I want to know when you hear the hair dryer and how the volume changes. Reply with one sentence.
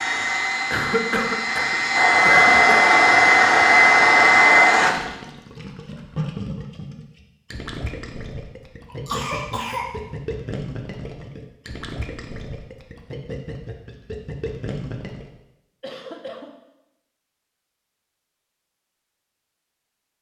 The hair dryer can be heard from 0.0 to 4.9 s, getting louder.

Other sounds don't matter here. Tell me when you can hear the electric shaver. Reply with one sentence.
You can't hear the electric shaver here.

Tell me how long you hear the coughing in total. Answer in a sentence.
The coughing can be heard for 4 seconds in total.